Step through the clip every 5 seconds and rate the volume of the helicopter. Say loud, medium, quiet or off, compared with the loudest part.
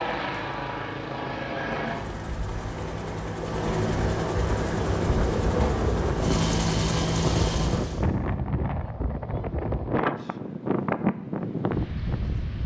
loud, loud, off.